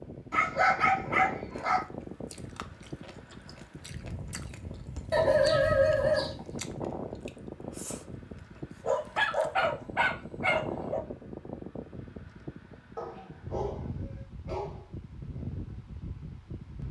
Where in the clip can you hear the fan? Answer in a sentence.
The fan can be heard from 0.0 to 16.8 s.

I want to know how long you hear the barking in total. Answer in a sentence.
The barking can be heard for 7 seconds in total.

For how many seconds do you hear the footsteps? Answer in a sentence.
The footsteps can't be heard in this clip.